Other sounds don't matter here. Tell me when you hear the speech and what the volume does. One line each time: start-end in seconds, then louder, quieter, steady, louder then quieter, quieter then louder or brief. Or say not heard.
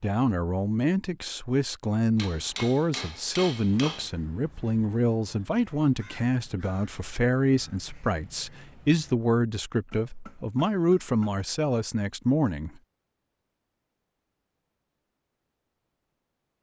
0.0-12.8 steady.